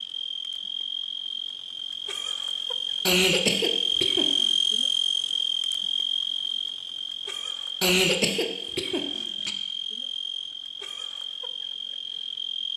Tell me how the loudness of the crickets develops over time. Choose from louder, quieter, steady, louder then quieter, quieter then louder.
louder then quieter.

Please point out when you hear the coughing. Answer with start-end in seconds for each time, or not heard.
3.0-4.5, 7.8-9.5.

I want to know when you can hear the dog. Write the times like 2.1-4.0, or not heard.
not heard.